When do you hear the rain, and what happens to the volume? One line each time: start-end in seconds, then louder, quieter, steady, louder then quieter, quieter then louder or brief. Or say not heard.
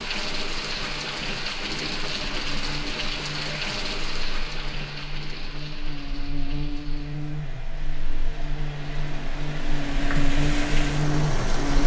0.0-11.8 quieter then louder.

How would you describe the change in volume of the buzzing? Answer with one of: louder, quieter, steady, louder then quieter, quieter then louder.
louder.